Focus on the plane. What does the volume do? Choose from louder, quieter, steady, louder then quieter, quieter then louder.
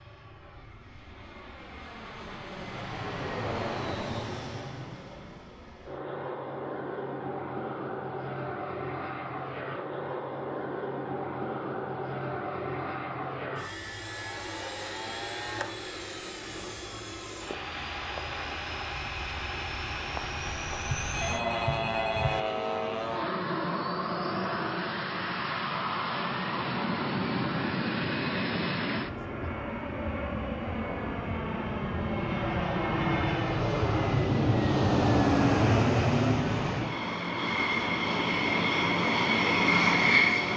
louder.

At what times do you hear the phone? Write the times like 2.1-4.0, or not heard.
20.9-22.4.